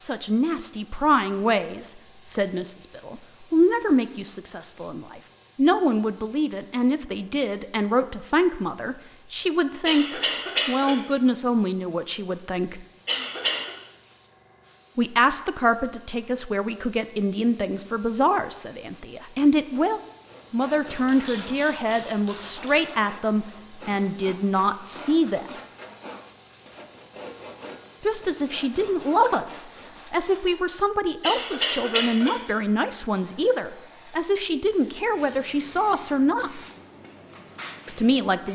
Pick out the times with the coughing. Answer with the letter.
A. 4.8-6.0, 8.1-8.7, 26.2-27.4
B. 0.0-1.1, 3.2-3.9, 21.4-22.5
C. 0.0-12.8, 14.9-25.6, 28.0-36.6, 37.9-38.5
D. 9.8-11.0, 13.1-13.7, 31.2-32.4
D.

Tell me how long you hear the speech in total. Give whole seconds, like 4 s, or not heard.
33 s.